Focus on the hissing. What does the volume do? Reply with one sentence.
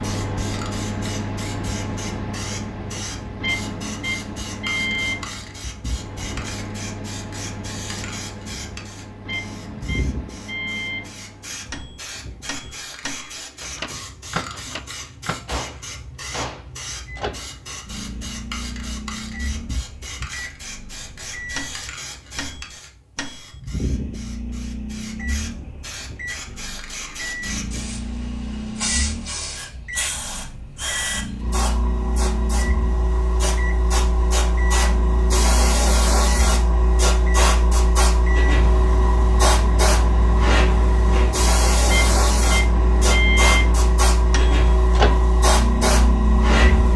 The loudness of the hissing goes up.